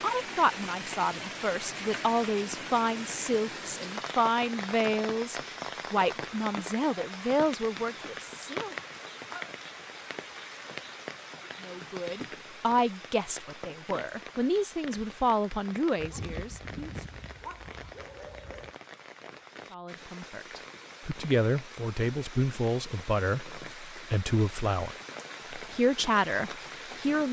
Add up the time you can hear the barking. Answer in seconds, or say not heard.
3 s.